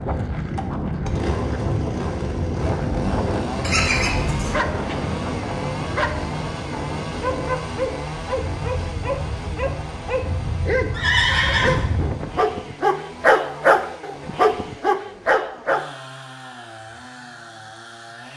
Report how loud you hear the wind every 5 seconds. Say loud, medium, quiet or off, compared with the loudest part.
loud, medium, loud, off.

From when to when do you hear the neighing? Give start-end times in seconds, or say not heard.
3.6-4.7, 10.9-11.8.